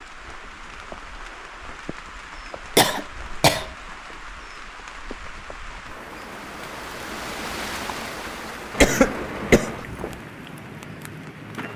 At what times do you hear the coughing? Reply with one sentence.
You can hear the coughing from 2.8 to 3.6 s and from 8.8 to 10.2 s.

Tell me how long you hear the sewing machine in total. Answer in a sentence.
The sewing machine can't be heard in this clip.